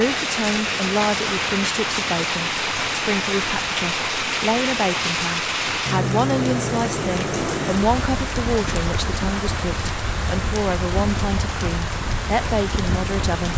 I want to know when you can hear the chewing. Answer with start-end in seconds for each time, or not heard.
not heard.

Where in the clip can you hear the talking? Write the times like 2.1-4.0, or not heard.
0.0-13.5.